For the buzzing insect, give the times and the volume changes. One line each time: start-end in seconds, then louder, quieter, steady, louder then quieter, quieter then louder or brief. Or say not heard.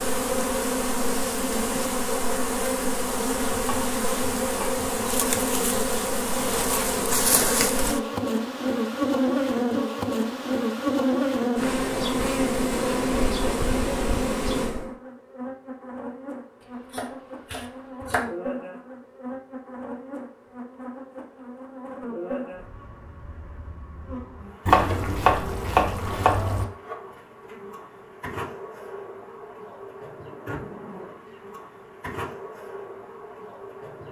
0.0-34.0 quieter.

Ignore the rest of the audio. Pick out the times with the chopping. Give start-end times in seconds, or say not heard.
3.5-5.4, 16.9-18.3, 24.7-26.6.